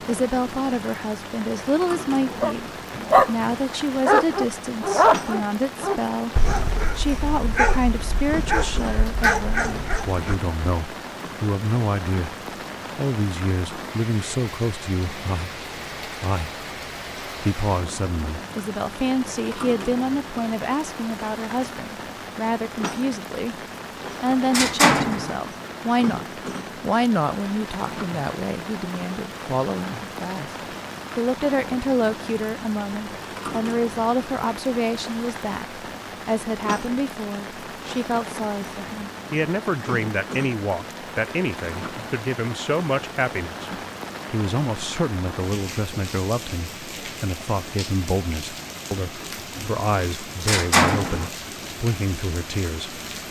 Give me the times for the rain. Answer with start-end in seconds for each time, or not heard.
0.0-53.2.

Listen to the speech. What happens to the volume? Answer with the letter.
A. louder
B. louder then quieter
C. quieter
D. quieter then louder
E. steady
E.